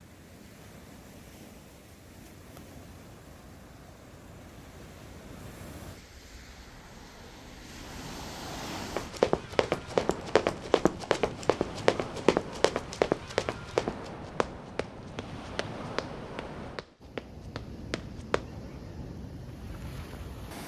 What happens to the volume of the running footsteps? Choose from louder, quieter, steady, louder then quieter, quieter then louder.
quieter.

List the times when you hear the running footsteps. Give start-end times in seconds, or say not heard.
8.9-18.4.